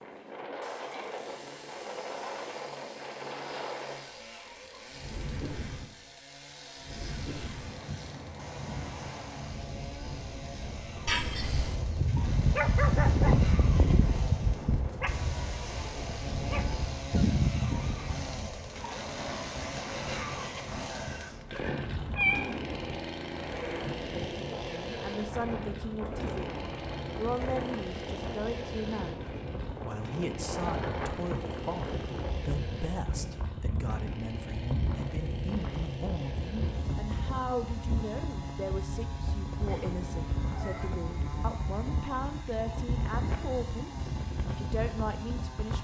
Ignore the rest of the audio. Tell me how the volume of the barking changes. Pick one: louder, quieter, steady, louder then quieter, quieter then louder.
quieter then louder.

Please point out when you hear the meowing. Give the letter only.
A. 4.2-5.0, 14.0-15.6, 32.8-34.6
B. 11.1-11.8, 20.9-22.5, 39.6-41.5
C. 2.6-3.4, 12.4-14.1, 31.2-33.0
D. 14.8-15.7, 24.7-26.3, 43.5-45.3
B.